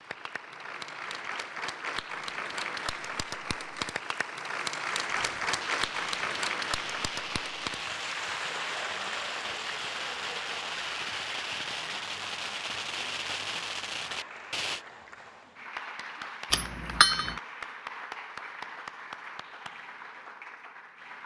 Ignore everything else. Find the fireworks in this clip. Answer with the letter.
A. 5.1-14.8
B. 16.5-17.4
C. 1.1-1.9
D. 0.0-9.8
A.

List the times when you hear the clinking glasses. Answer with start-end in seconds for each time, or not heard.
16.5-17.4.